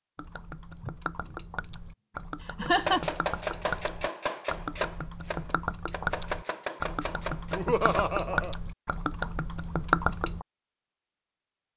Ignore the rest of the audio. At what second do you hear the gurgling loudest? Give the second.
10 s.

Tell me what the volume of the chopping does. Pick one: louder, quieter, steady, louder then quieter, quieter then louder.
quieter then louder.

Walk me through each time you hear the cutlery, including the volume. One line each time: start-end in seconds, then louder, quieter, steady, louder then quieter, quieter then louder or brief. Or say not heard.
not heard.